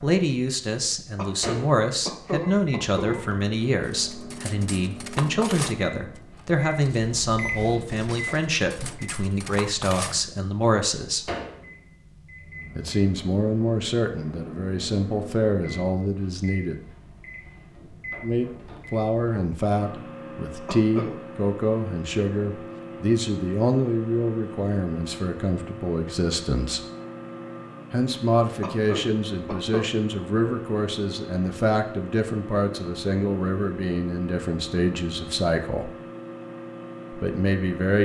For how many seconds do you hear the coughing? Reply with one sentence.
You can hear the coughing for 4 seconds altogether.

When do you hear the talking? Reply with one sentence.
You can hear the talking from 0.0 to 11.2 s, from 12.8 to 16.8 s, from 18.2 to 26.9 s, from 27.9 to 35.9 s and from 37.1 to 38.0 s.